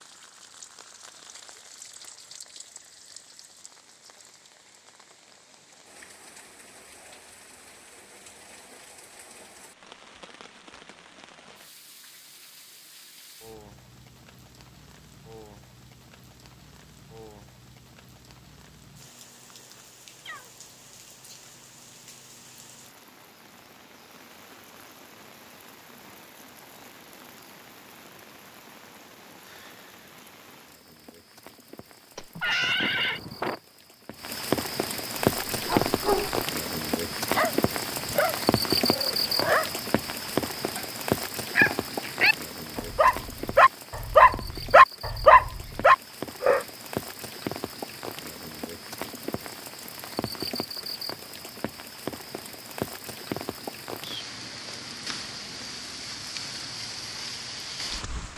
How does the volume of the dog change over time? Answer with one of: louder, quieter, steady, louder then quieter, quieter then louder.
louder.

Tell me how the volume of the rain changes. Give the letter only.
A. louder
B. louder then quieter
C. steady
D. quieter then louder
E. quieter
B.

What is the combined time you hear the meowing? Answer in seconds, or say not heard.
2 s.